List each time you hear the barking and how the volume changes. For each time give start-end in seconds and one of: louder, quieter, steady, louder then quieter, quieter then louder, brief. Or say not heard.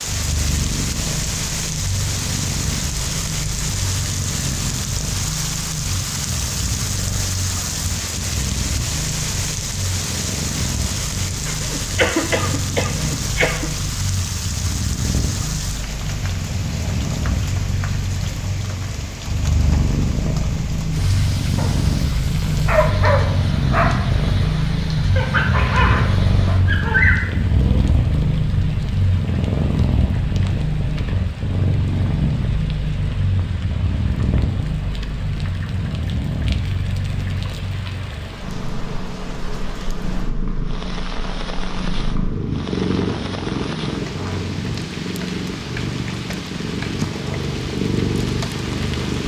20.9-27.8 louder.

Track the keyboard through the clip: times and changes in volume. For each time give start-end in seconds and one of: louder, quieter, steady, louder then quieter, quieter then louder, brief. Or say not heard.
not heard.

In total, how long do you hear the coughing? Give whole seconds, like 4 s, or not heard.
2 s.